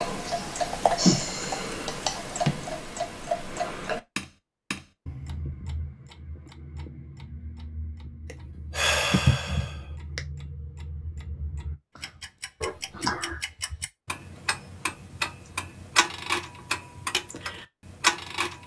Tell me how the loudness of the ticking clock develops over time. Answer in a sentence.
The volume of the ticking clock goes down, then up.